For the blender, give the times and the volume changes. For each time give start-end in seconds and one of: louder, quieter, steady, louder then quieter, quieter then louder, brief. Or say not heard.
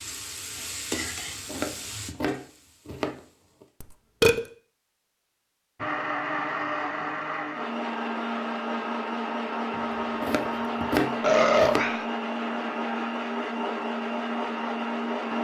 5.8-15.3 steady.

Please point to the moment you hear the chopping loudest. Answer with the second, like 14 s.
11 s.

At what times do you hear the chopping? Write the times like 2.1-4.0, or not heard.
1.0-3.6, 9.7-11.9.